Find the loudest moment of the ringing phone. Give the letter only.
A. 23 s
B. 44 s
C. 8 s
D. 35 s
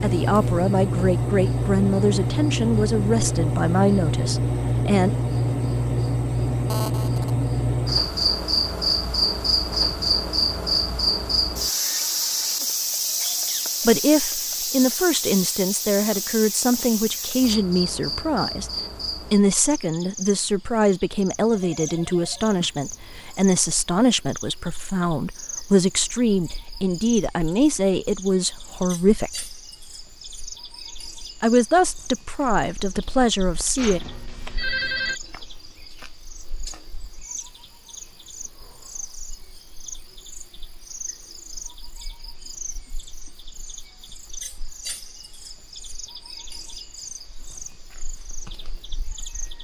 D.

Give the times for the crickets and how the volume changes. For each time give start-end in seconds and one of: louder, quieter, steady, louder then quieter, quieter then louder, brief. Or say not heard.
0.0-49.6 quieter.